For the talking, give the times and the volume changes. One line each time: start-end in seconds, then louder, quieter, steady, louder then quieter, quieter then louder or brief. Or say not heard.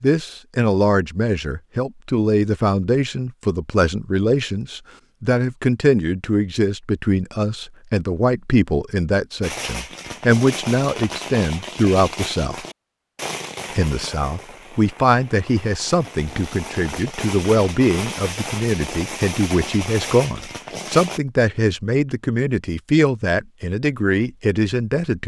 0.0-12.6 steady
13.8-25.2 steady.